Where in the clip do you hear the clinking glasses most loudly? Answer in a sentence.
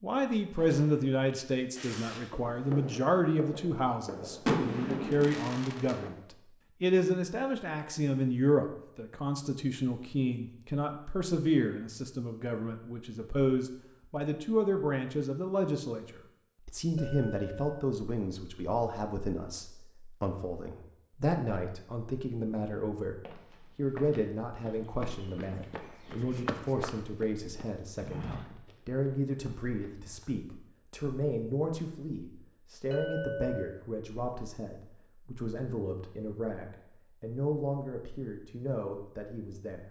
The loudest moment of the clinking glasses is at 33 seconds.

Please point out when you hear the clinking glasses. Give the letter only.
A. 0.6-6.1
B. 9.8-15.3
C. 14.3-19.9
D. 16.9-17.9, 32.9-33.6
D.